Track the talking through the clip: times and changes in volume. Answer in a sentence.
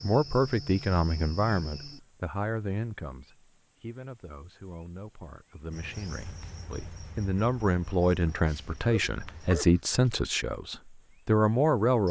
The talking can be heard from 0.0 to 12.0 s, getting quieter then louder.